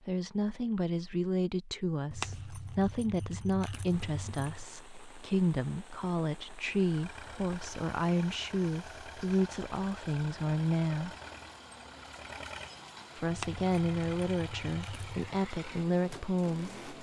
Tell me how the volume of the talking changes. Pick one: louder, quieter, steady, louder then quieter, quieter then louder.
steady.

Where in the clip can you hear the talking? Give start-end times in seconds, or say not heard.
0.1-11.2, 13.2-16.8.